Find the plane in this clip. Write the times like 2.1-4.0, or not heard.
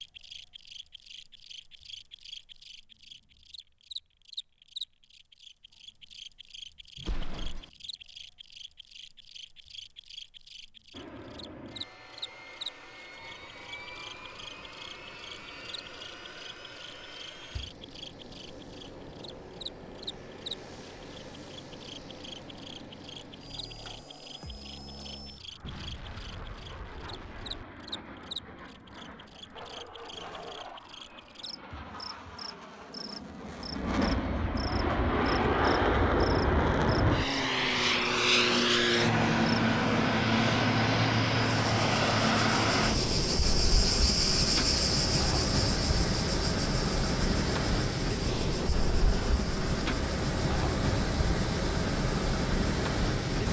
10.9-53.4.